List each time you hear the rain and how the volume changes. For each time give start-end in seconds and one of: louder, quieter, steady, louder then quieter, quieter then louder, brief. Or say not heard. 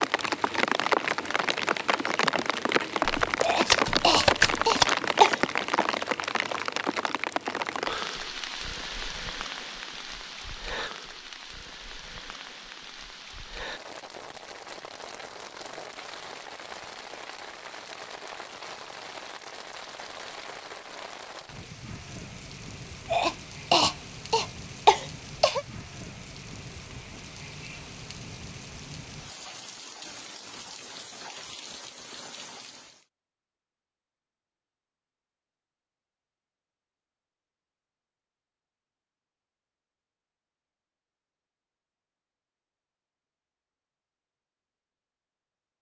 0.0-33.0 quieter.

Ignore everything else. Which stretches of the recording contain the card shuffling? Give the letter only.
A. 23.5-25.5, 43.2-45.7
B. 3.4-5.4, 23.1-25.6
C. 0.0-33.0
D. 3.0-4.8
D.